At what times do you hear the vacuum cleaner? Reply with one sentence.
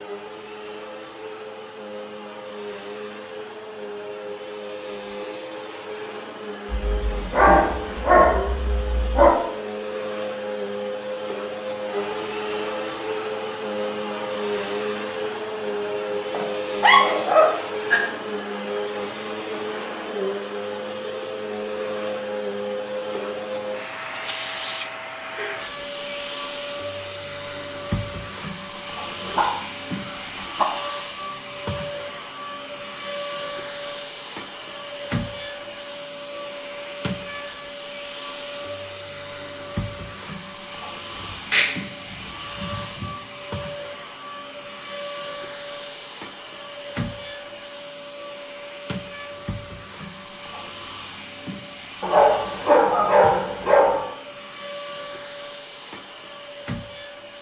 The vacuum cleaner can be heard from 0.0 to 57.3 s.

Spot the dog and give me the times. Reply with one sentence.
You can hear the dog from 6.7 to 9.3 s, from 16.3 to 18.0 s, from 28.8 to 30.6 s, from 41.2 to 43.0 s and from 52.0 to 54.0 s.